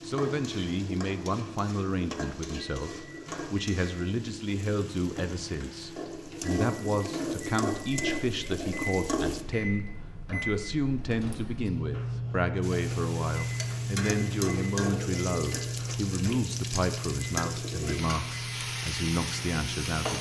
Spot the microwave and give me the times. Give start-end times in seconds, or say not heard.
0.0-20.1.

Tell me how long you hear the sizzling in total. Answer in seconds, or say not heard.
17 s.